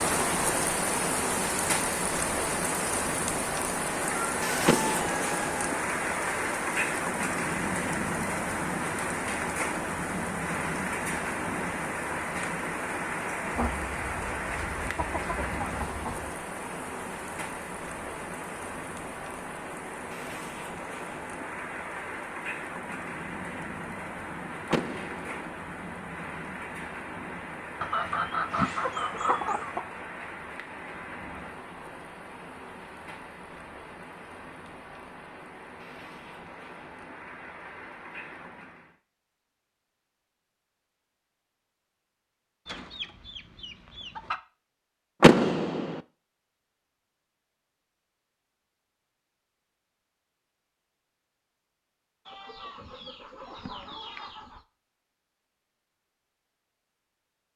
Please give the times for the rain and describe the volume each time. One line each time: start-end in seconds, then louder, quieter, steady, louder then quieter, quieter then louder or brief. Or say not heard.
0.0-39.0 quieter.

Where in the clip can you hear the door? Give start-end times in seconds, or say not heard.
4.7-5.5, 24.7-25.5, 45.2-46.0.